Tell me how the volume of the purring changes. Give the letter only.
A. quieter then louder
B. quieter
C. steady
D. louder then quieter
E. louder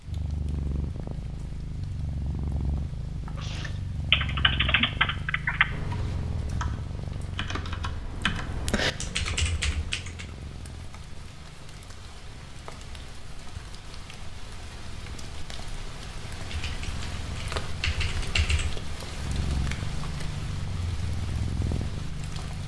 A.